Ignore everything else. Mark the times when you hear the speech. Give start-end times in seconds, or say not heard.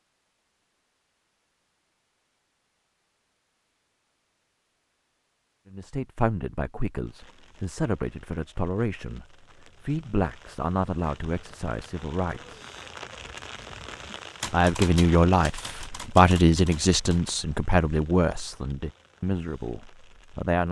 5.7-12.6, 14.5-20.6.